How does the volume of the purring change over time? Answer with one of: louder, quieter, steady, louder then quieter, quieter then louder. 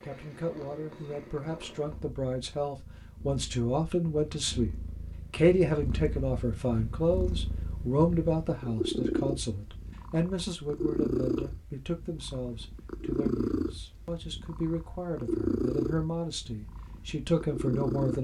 louder.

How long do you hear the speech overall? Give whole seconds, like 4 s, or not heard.
18 s.